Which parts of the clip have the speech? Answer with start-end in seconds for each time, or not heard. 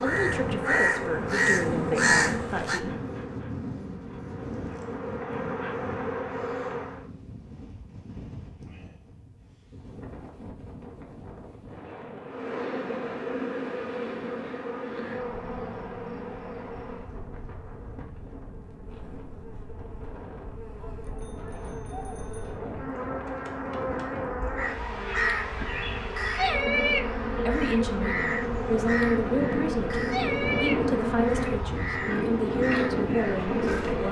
0.0-3.0, 27.4-34.0.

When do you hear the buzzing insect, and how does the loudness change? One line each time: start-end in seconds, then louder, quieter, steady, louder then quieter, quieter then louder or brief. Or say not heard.
0.0-7.1 quieter then louder
12.2-34.0 quieter then louder.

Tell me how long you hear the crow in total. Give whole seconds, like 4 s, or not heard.
12 s.